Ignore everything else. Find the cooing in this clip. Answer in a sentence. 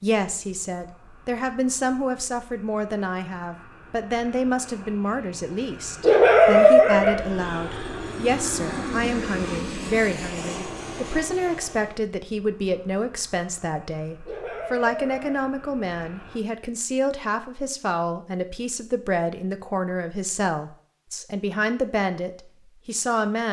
The cooing can't be heard in this clip.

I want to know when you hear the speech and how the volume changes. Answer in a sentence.
You can hear the speech from 0.0 to 23.4 s, at a steady volume.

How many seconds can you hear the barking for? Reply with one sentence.
You can hear the barking for 2 seconds altogether.